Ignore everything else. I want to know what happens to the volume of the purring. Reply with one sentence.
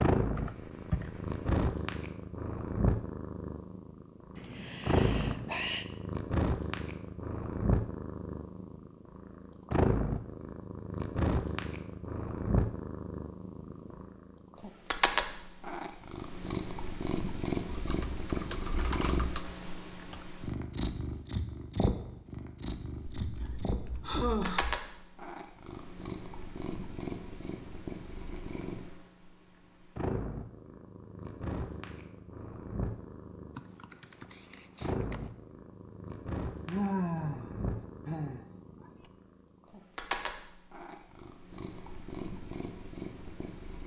The loudness of the purring goes down.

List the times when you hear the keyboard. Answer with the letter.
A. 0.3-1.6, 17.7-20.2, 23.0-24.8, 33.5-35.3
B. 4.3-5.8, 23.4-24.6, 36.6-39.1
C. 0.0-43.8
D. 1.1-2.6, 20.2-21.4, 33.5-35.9
A.